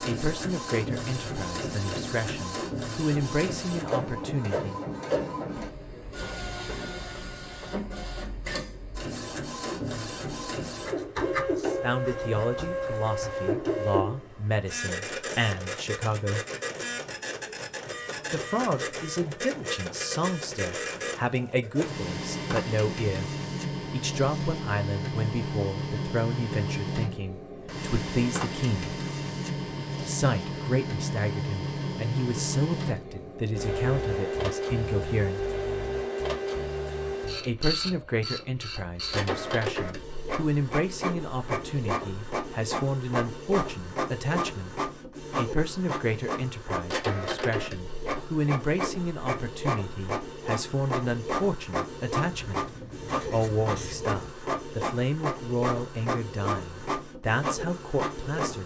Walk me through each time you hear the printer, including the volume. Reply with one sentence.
The printer can be heard from 0.0 to 58.6 s, at a steady volume.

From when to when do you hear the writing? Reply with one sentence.
The writing can be heard from 10.8 to 13.1 s and from 52.3 to 54.1 s.